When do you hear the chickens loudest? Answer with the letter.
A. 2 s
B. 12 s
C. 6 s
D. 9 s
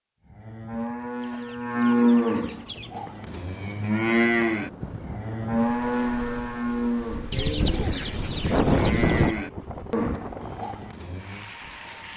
D.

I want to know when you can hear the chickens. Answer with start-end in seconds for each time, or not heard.
1.2-3.0, 7.3-9.3.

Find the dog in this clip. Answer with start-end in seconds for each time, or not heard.
not heard.